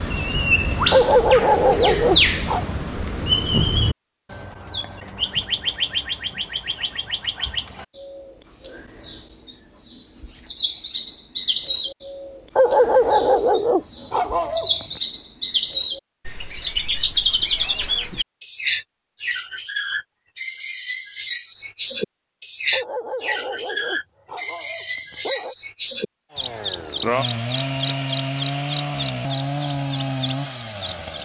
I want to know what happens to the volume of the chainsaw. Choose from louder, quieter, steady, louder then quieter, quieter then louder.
steady.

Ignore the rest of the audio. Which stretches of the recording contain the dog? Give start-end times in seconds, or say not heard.
0.9-2.7, 12.6-14.8, 22.7-25.6.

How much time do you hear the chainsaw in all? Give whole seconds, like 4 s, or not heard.
5 s.